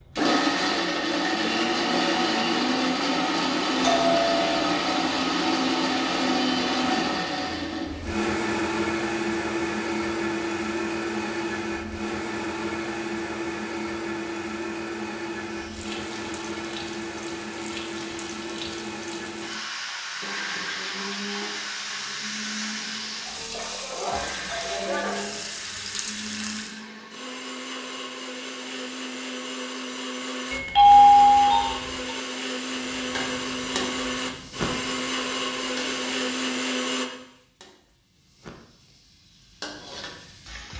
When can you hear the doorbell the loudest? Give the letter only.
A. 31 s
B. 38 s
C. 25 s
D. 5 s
A.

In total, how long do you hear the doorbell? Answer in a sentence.
You can hear the doorbell for 4 seconds altogether.